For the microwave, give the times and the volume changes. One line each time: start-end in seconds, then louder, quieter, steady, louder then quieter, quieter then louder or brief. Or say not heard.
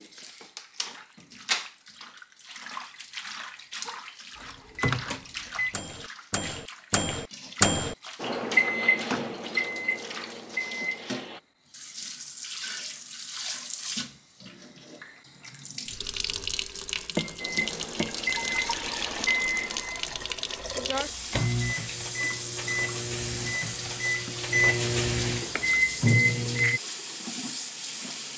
4.3-11.4 louder then quieter
17.4-26.8 quieter then louder.